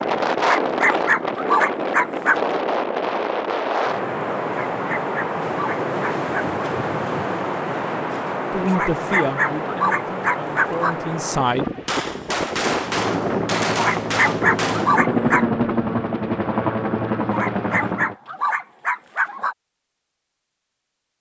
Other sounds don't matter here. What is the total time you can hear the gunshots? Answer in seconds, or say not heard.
3 s.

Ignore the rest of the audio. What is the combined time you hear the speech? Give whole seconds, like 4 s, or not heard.
3 s.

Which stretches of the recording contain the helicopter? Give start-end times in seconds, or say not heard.
12.8-18.1.